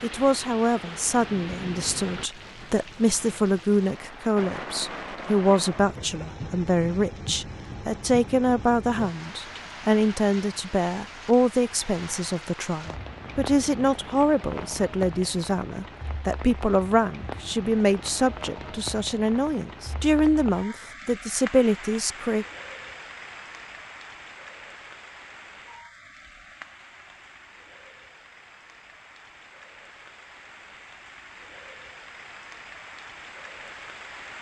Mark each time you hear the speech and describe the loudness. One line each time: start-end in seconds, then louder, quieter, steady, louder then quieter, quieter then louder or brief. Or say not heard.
0.0-22.4 steady.